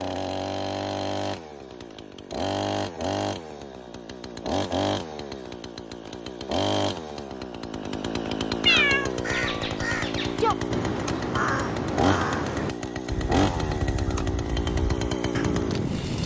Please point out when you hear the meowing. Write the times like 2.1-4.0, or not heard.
8.7-9.1.